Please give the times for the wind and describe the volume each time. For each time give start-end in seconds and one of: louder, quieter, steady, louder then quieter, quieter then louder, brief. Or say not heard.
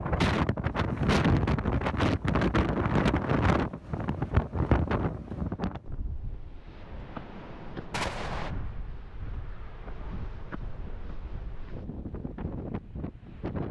0.0-13.6 quieter.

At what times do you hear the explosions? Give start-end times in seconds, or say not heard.
7.9-8.6.